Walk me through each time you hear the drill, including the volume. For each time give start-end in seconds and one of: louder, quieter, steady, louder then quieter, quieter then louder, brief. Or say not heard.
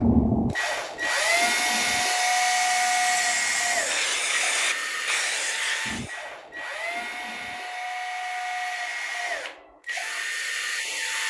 0.0-11.2 quieter.